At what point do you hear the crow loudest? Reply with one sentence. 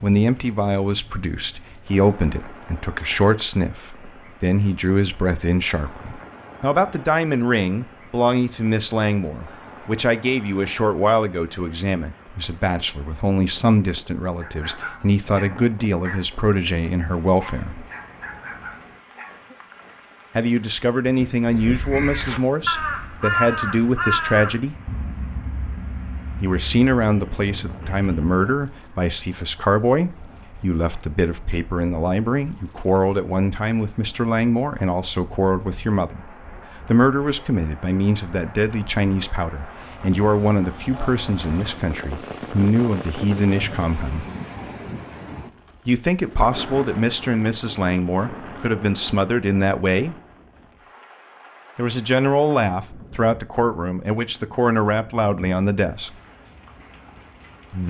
The loudest moment of the crow is at 23 seconds.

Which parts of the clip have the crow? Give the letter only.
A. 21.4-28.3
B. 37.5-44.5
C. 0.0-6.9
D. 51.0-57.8
A.